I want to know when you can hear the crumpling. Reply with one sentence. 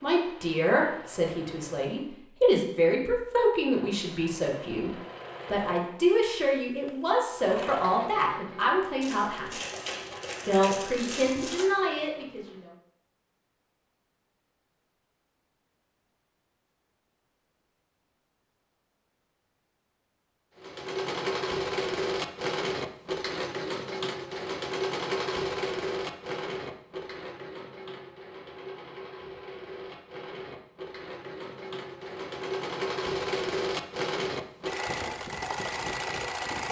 The crumpling can be heard from 9.0 to 11.7 s.